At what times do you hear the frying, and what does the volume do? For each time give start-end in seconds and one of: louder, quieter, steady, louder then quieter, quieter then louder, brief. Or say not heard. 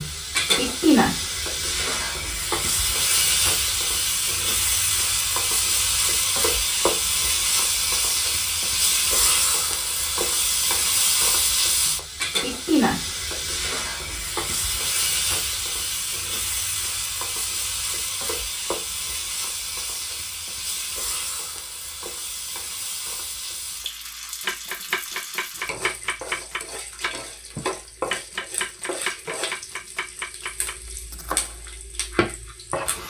0.0-33.0 quieter.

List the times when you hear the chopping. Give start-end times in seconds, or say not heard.
24.4-31.6.